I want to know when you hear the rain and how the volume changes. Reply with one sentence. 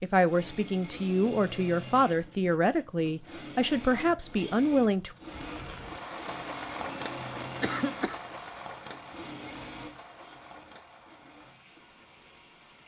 The rain can be heard from 5.2 to 12.8 s, getting quieter.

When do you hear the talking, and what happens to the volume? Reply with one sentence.
You can hear the talking from 0.0 to 5.2 s, at a steady volume.